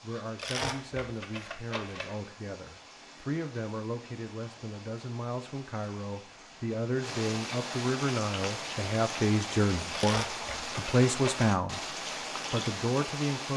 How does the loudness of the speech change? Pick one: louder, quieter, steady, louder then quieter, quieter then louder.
louder.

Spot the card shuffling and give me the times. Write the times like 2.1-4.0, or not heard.
0.3-2.2, 9.9-11.4.